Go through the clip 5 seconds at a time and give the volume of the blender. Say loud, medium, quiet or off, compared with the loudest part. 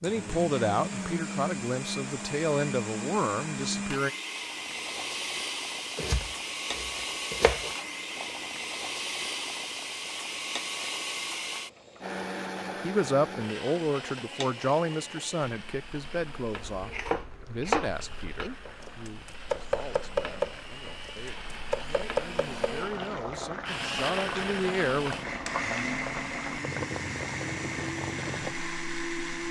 loud, loud, loud, quiet, loud, loud.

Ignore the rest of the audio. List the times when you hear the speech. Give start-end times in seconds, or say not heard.
0.0-4.1, 12.8-25.1.